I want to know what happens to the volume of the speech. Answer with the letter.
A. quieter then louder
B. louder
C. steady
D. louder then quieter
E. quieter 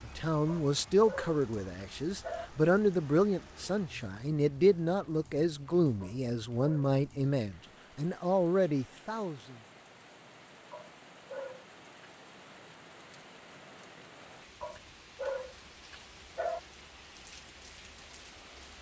C.